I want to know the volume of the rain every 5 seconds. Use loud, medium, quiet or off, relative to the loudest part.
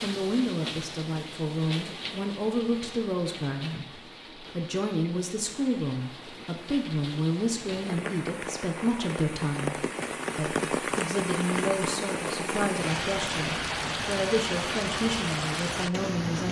medium, medium, loud, loud.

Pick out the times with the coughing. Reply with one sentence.
The coughing can't be heard in this clip.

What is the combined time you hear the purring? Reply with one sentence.
You can't hear the purring here.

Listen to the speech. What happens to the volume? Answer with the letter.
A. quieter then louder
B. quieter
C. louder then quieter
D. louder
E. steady
E.